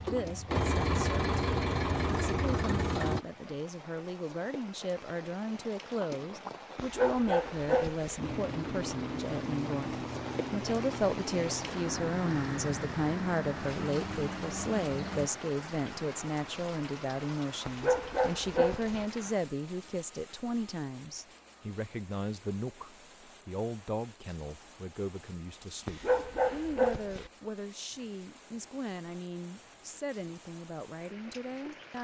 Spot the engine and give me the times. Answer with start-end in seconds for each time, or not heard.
0.0-3.2, 8.2-15.3.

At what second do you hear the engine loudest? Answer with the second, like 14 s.
1 s.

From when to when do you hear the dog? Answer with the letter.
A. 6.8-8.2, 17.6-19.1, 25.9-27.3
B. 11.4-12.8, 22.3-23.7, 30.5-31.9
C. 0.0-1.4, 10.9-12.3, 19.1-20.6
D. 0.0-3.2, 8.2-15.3
A.